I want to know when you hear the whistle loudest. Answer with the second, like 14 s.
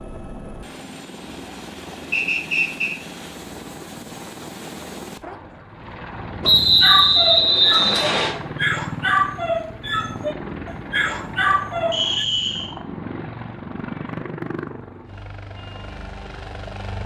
7 s.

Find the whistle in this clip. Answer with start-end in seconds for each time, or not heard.
2.1-3.0, 6.4-8.3, 11.9-12.8.